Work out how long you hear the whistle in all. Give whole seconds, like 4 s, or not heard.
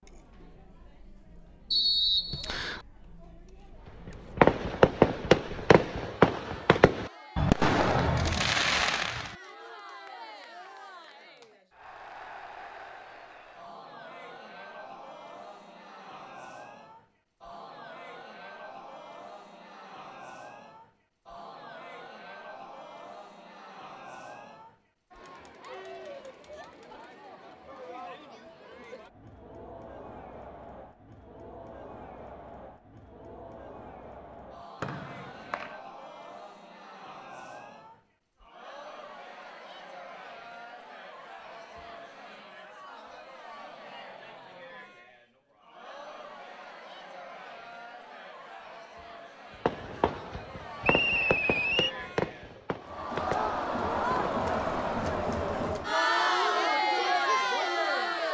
3 s.